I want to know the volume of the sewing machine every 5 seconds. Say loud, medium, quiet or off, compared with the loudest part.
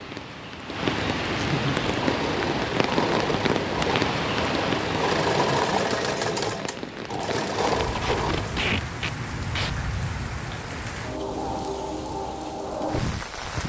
loud, loud, off.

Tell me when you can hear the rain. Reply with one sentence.
The rain can be heard from 0.0 to 13.6 s.